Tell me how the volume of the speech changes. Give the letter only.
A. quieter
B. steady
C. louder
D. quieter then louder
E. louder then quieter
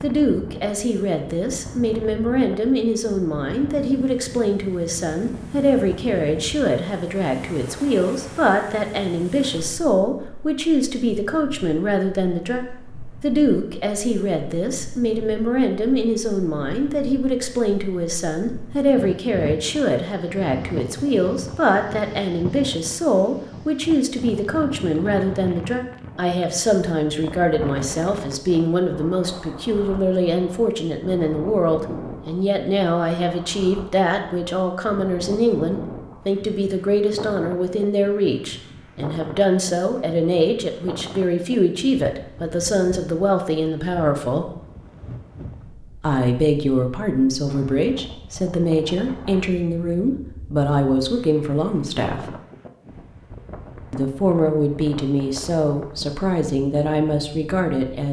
B.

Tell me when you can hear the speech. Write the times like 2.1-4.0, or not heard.
0.0-44.5, 46.0-52.4, 53.9-58.0.